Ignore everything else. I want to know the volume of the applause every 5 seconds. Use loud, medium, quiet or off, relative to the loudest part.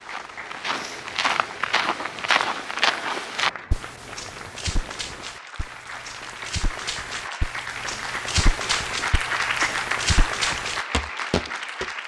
medium, loud, loud.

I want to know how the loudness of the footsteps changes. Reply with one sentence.
The volume of the footsteps goes down, then up.